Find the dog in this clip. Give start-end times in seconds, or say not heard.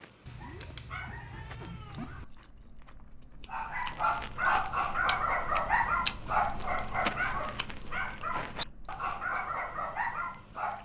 0.0-2.3, 3.5-10.7.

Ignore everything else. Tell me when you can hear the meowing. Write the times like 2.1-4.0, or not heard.
0.2-2.2, 6.4-7.8.